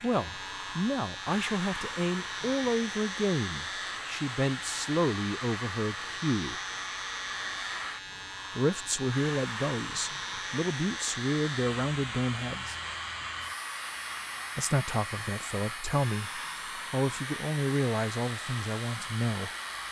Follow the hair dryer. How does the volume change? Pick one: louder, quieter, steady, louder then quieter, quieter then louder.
steady.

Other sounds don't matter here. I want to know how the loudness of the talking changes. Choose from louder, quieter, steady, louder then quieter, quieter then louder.
steady.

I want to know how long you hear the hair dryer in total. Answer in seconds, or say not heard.
20 s.